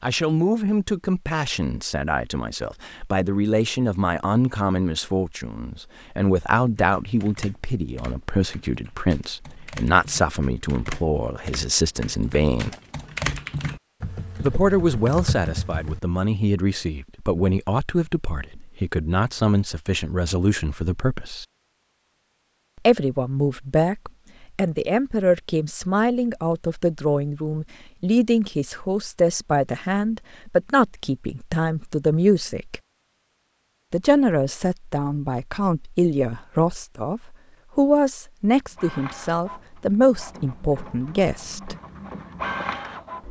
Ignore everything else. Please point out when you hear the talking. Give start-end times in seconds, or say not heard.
0.0-12.8, 14.4-21.4, 22.9-32.8, 33.9-41.8.